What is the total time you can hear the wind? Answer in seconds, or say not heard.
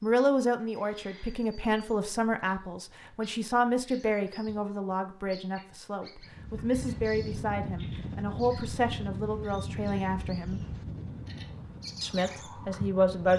7 s.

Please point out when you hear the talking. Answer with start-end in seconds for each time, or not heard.
0.0-10.7, 12.0-13.3.